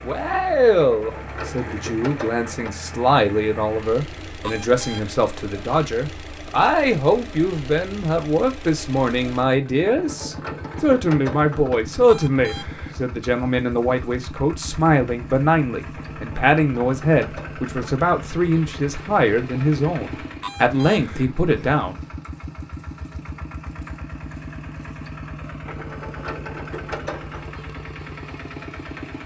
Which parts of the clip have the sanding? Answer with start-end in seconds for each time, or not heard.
not heard.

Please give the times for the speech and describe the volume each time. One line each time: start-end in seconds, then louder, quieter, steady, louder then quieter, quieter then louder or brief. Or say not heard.
0.0-22.0 steady.